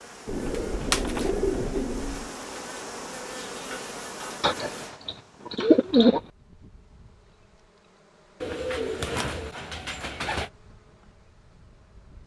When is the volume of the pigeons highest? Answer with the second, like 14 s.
6 s.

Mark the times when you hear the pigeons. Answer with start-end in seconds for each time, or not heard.
0.2-2.4, 4.4-6.2, 8.4-10.5.